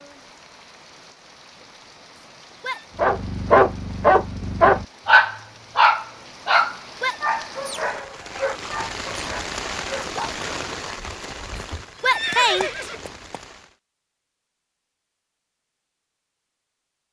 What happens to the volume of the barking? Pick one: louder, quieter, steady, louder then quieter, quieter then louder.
quieter.